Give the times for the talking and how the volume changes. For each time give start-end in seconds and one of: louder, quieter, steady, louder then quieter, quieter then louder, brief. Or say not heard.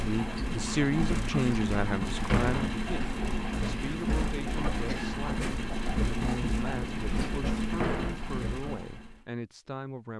0.0-10.1 quieter.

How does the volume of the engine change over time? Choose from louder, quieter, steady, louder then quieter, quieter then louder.
steady.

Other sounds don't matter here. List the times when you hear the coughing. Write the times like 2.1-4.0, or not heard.
4.5-5.2.